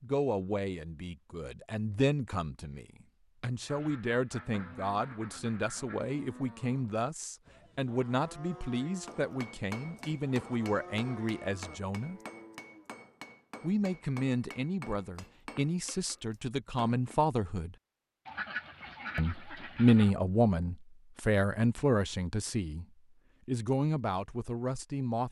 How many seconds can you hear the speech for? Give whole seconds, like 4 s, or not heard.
22 s.